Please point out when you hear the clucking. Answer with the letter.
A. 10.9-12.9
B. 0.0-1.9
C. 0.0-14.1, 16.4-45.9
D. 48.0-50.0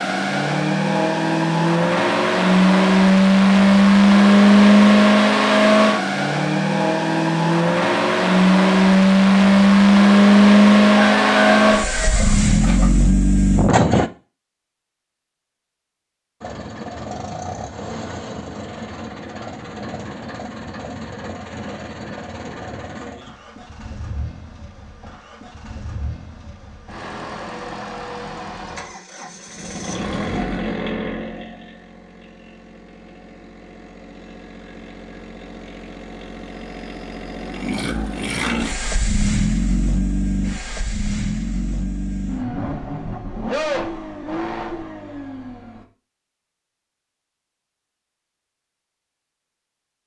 A.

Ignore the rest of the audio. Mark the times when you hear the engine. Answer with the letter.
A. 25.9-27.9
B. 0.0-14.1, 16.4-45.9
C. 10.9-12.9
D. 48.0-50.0
B.